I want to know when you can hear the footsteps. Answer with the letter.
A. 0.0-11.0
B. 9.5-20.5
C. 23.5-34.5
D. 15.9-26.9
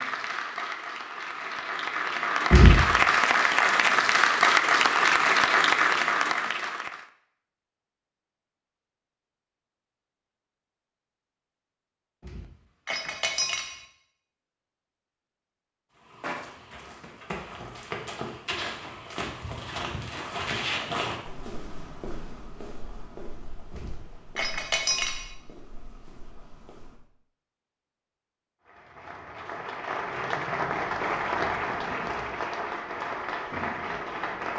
D.